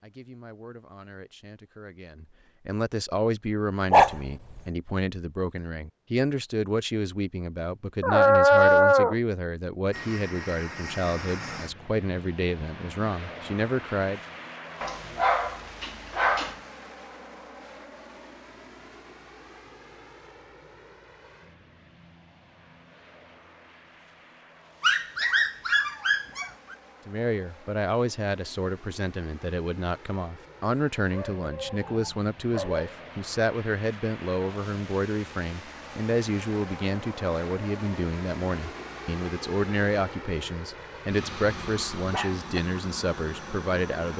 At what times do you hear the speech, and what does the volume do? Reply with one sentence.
You can hear the speech from 0.0 to 14.2 s, getting louder; and from 27.1 to 44.1 s, at a steady volume.